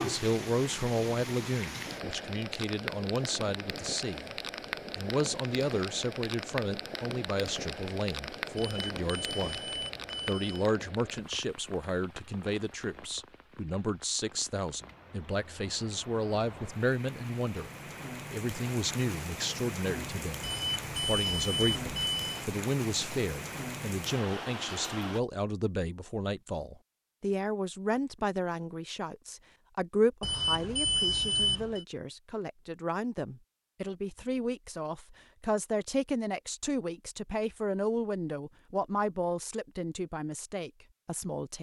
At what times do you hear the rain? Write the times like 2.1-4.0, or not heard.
0.0-25.2.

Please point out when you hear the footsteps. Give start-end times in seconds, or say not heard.
not heard.